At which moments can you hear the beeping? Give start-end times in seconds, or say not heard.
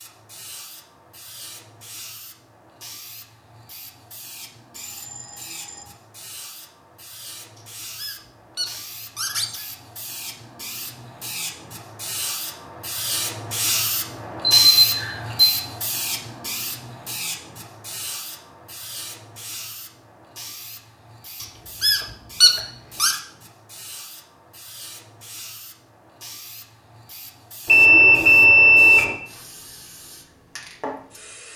4.8-5.8, 14.7-15.5, 27.6-29.1.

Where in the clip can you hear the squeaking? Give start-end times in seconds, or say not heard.
7.5-9.8, 21.4-23.1.